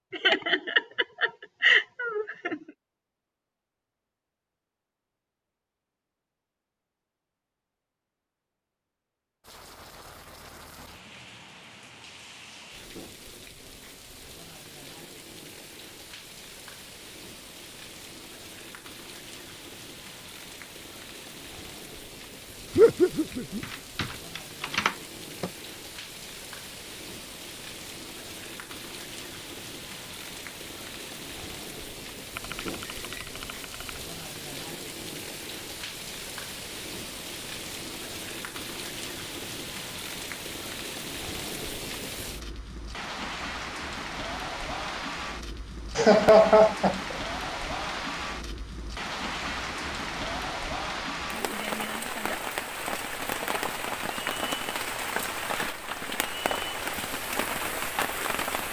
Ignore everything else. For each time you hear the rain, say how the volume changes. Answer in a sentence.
The rain can be heard from 9.4 to 58.6 s, getting louder.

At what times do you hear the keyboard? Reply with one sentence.
The keyboard can be heard from 23.6 to 25.5 s and from 32.4 to 34.0 s.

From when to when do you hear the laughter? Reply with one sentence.
The laughter can be heard from 0.1 to 2.5 s, from 22.8 to 23.6 s and from 46.0 to 47.1 s.